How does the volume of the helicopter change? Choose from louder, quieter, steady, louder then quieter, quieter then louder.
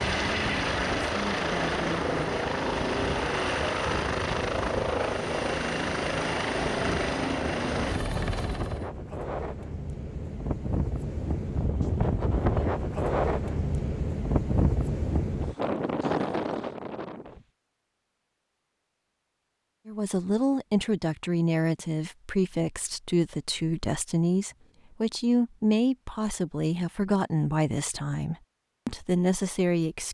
steady.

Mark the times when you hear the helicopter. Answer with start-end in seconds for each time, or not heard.
0.0-8.9.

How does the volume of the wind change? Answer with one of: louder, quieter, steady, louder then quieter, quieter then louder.
louder.